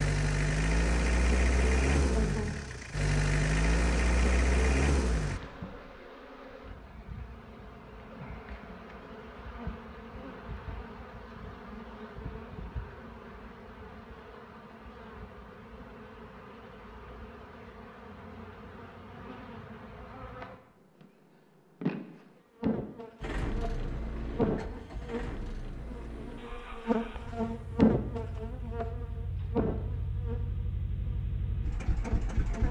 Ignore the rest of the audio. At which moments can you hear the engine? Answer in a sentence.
You can hear the engine from 0.0 to 5.4 s and from 23.2 to 32.6 s.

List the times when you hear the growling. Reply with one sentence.
The growling can't be heard in this clip.